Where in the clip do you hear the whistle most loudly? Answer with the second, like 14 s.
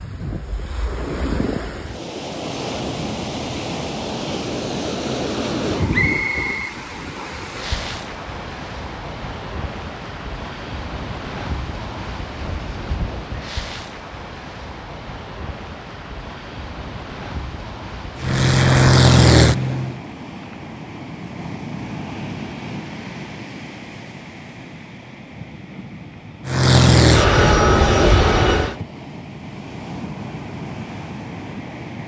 6 s.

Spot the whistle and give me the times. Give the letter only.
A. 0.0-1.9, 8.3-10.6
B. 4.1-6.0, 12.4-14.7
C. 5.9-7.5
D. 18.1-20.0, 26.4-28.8
C.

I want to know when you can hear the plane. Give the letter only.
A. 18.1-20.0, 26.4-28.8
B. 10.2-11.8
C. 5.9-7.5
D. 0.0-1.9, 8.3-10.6
A.